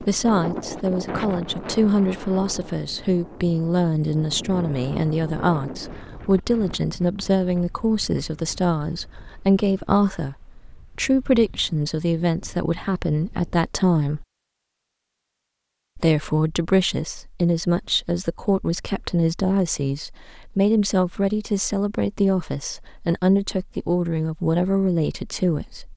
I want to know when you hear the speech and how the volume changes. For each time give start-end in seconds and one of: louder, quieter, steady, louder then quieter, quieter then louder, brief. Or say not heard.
0.0-14.2 steady
15.9-25.9 steady.